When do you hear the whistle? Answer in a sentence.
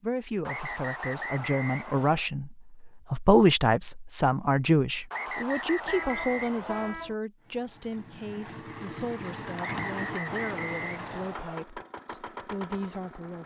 You can hear the whistle from 0.5 to 2.3 s, from 5.1 to 7.0 s and from 9.6 to 11.6 s.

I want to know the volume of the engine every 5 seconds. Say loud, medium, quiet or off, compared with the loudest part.
off, loud, loud.